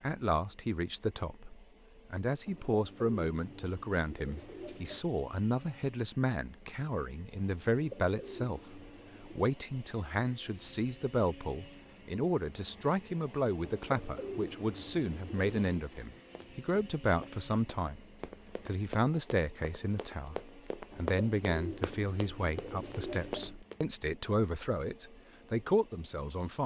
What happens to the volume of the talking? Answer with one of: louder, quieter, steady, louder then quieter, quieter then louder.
steady.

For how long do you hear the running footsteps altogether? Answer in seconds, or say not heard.
8 s.